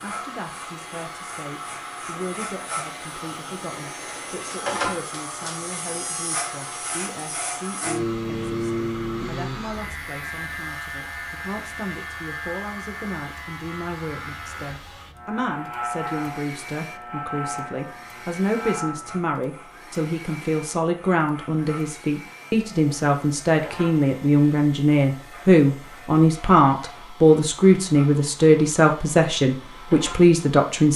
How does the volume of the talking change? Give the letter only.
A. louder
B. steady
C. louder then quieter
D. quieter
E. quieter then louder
A.